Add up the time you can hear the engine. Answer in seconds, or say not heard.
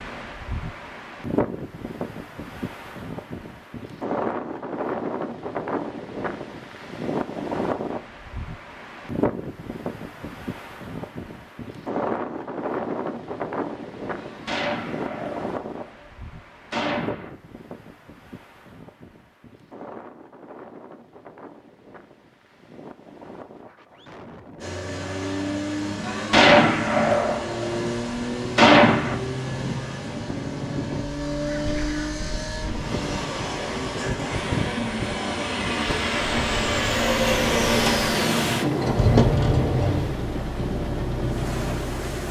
18 s.